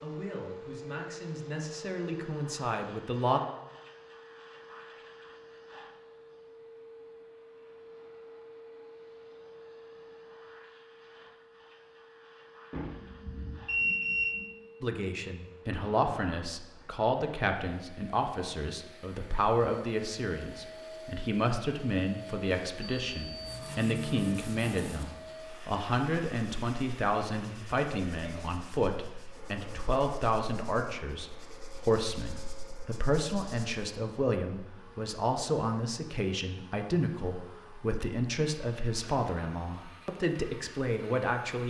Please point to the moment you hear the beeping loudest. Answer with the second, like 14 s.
14 s.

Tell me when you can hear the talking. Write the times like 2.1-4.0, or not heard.
0.0-3.4, 14.8-41.6.